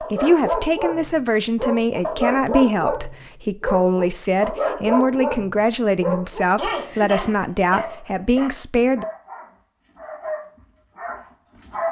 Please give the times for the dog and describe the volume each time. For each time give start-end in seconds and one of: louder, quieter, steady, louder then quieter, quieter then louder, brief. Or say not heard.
0.0-11.8 quieter.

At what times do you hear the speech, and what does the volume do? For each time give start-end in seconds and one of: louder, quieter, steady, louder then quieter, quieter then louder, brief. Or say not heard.
0.0-9.1 steady.